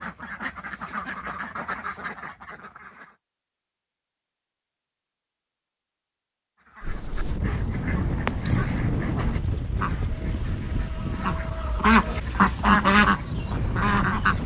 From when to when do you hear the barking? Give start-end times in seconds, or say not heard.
not heard.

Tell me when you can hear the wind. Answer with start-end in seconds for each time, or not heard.
6.8-14.4.